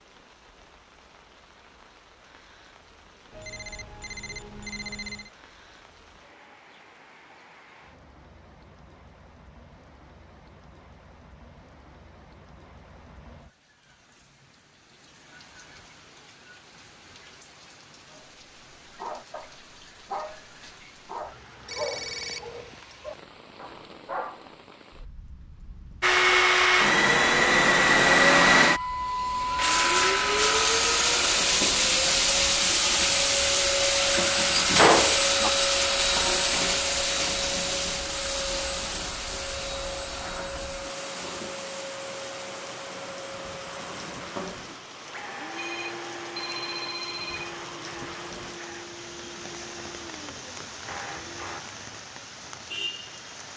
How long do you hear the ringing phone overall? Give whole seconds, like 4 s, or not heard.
5 s.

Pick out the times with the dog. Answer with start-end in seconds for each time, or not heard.
18.1-24.6.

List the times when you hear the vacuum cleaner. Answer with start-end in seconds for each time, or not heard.
26.0-51.6.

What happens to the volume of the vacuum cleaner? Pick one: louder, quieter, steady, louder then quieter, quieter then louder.
quieter.